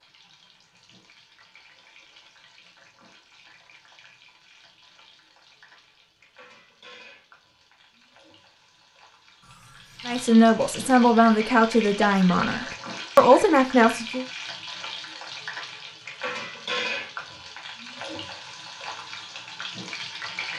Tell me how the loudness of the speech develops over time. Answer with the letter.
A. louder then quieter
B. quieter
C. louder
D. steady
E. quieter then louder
E.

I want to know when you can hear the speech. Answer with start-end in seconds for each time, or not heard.
10.1-14.2.